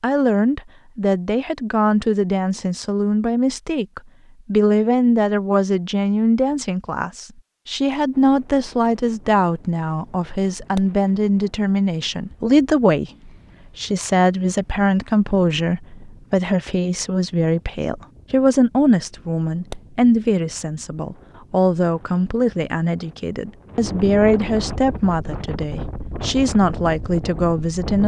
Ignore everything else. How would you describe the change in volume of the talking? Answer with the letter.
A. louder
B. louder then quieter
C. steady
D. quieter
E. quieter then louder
C.